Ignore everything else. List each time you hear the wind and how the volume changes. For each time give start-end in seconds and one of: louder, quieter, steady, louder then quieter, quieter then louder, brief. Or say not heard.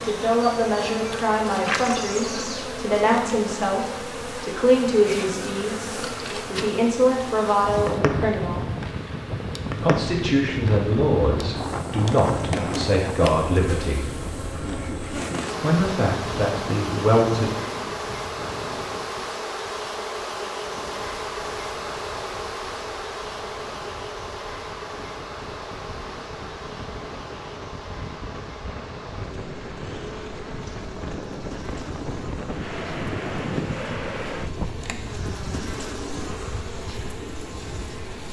7.7-38.2 quieter then louder.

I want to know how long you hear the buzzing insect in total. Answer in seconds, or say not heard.
38 s.